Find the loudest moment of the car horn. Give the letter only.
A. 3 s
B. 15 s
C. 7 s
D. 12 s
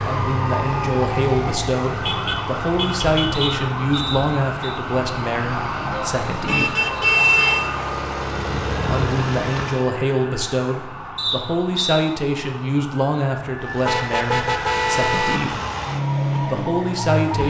C.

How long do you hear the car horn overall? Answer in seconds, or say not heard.
5 s.